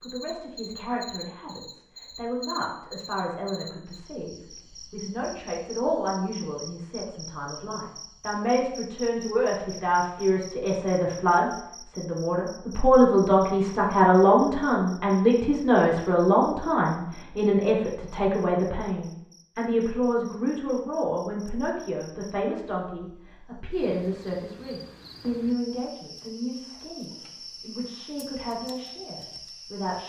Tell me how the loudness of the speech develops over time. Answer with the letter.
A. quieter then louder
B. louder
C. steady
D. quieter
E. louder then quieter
E.